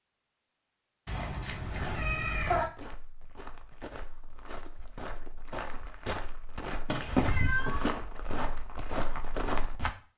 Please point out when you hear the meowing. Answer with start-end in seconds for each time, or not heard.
1.1-2.7, 6.8-8.0.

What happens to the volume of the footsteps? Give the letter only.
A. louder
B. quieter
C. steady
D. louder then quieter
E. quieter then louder
A.